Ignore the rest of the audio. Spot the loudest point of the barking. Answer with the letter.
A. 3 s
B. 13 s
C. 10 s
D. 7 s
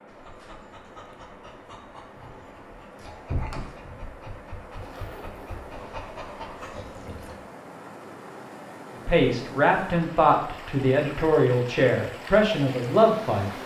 A.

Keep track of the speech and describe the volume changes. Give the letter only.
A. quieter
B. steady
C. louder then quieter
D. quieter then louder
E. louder
B.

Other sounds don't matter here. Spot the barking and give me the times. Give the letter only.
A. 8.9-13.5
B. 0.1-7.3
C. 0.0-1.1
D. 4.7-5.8
B.